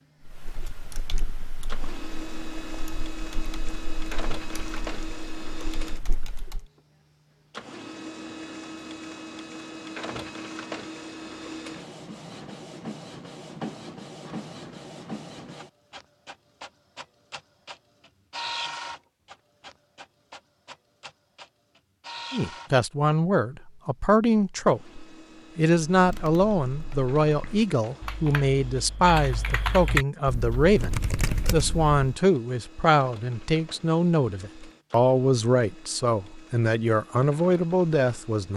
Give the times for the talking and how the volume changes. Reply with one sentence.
You can hear the talking from 22.3 to 38.5 s, at a steady volume.